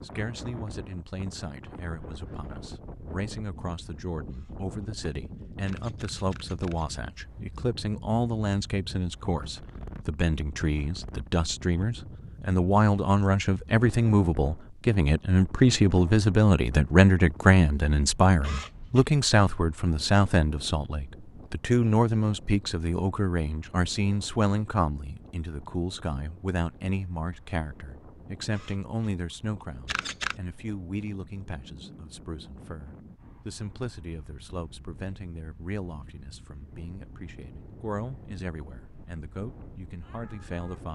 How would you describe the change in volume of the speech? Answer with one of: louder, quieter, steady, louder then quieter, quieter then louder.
louder then quieter.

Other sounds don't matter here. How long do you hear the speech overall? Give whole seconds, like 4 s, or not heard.
41 s.